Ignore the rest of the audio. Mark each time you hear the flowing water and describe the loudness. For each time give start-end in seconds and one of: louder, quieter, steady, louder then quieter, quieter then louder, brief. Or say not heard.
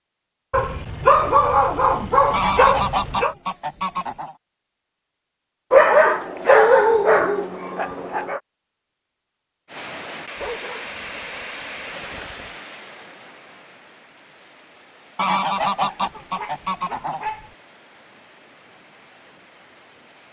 9.7-20.2 quieter.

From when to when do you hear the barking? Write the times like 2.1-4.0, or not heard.
0.5-3.4, 5.7-8.4, 10.3-12.6, 15.7-17.6.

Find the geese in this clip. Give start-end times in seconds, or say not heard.
2.3-4.3, 15.2-17.2.